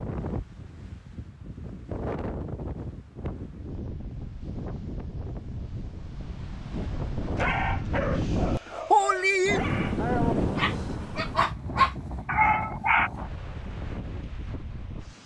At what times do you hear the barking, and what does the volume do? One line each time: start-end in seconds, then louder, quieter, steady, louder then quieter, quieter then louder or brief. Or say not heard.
7.3-13.1 louder.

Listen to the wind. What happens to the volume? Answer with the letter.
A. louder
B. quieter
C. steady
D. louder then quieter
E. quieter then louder
D.